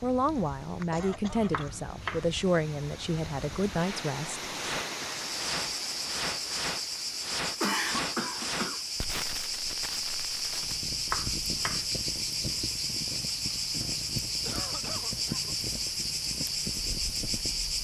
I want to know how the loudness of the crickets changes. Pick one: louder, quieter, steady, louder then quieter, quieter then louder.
steady.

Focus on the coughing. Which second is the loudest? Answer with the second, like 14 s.
8 s.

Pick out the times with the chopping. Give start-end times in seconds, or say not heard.
1.5-2.3, 11.1-11.8.